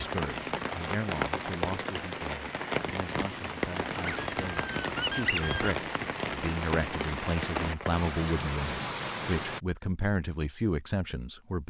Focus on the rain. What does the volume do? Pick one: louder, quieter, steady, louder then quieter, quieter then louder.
steady.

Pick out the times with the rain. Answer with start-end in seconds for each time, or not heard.
0.0-9.6.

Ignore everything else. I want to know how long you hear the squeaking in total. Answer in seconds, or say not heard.
2 s.